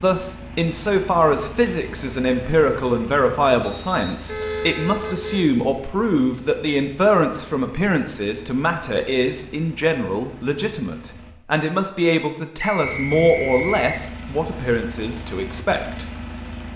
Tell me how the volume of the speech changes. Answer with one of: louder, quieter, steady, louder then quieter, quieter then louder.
steady.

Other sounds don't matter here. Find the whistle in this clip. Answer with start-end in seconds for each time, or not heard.
3.6-4.8, 12.6-13.9.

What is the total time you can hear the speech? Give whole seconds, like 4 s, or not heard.
16 s.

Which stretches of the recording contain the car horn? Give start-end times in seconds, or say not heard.
4.2-5.4.